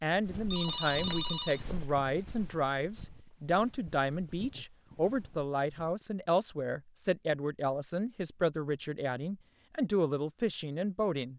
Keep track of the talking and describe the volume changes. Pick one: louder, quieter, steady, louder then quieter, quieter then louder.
steady.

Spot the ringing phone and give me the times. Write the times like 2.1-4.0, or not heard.
0.3-1.6.